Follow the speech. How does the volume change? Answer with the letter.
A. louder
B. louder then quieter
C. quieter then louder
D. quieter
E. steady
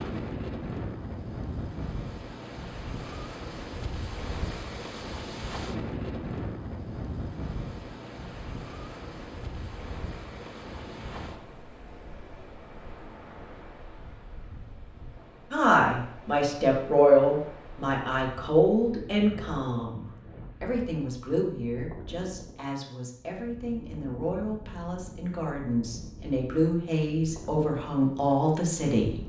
C.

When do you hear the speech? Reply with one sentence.
You can hear the speech from 15.5 to 29.2 s.